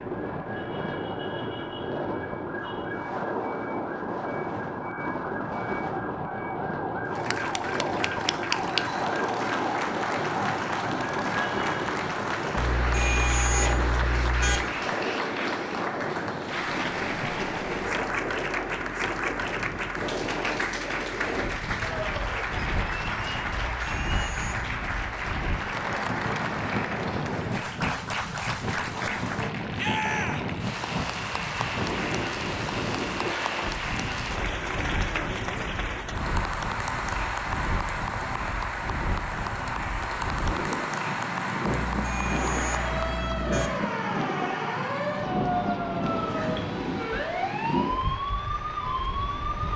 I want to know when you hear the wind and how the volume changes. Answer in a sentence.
You can hear the wind from 0.0 to 49.7 s, at a steady volume.